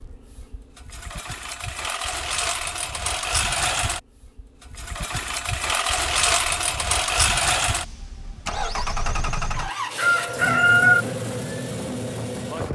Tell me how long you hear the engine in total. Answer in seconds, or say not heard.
13 s.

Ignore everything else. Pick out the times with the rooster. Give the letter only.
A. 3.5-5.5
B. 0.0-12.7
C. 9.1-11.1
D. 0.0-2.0
C.